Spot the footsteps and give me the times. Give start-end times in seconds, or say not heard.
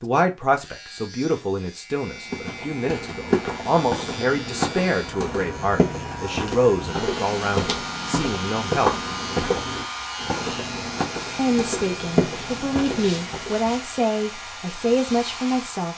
2.2-13.5.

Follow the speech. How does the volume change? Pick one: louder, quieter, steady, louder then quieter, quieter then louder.
steady.